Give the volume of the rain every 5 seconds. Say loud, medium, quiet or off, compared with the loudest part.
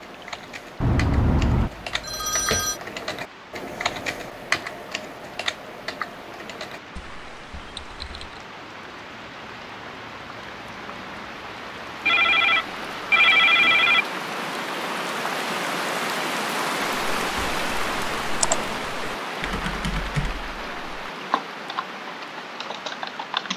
quiet, quiet, medium, loud, medium.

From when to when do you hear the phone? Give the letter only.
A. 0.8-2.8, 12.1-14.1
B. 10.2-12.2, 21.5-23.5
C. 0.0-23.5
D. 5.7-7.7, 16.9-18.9
A.